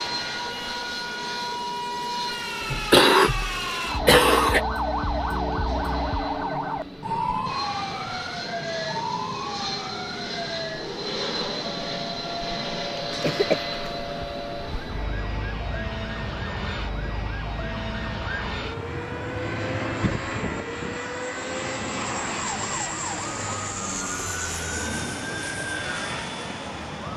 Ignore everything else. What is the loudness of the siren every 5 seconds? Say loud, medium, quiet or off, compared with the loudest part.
loud, loud, medium, medium, medium, medium.